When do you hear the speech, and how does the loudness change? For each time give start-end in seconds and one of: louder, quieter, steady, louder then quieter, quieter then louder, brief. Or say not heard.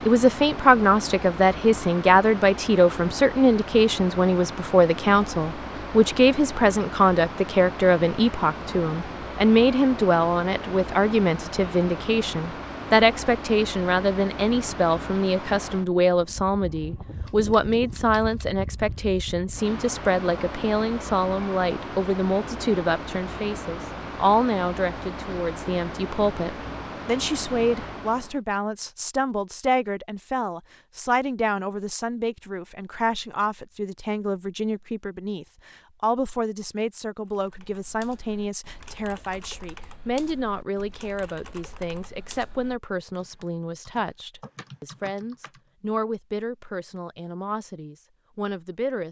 0.1-49.0 quieter.